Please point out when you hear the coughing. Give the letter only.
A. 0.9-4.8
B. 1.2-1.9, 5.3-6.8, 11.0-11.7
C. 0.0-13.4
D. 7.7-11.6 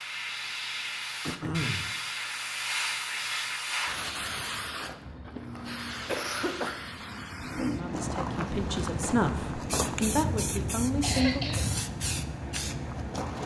B.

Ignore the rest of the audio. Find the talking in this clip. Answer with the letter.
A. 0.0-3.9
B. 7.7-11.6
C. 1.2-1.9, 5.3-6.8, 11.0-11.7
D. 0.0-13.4
B.